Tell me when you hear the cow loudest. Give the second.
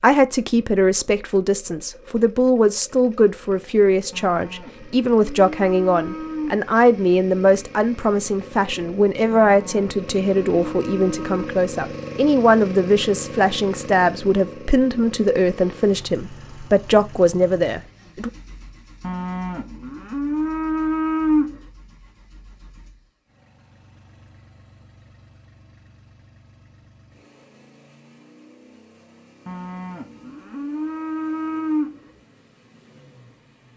21 s.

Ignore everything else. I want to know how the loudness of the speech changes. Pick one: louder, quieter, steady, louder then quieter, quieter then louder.
steady.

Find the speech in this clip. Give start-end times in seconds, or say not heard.
0.0-18.3.